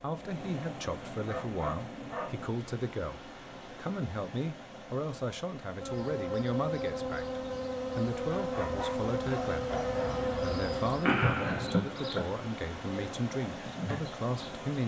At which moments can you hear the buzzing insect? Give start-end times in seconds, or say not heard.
5.8-14.7.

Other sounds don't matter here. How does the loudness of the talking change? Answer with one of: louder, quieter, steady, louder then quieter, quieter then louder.
steady.